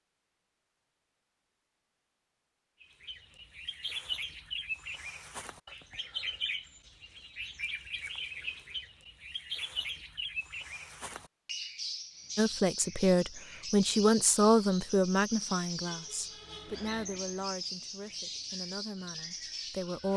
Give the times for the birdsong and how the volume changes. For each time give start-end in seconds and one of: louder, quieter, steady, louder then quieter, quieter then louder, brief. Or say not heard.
2.8-20.1 steady.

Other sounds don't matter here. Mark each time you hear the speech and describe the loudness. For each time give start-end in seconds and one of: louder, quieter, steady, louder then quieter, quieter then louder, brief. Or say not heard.
12.3-20.1 quieter.